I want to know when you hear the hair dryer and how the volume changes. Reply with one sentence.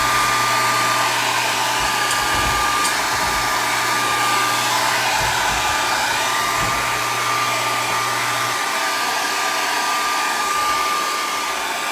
You can hear the hair dryer from 0.0 to 11.8 s, at a steady volume.